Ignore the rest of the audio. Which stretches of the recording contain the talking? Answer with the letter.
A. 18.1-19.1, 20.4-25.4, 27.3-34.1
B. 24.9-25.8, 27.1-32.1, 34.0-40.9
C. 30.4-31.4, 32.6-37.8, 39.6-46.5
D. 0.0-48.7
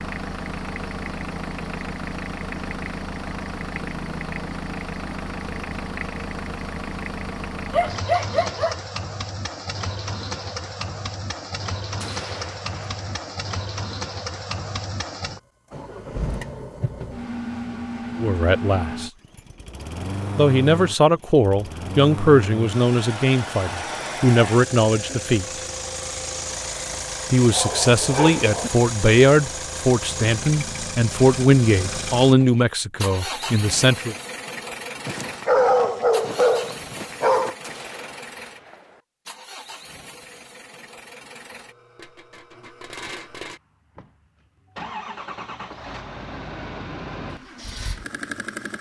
A.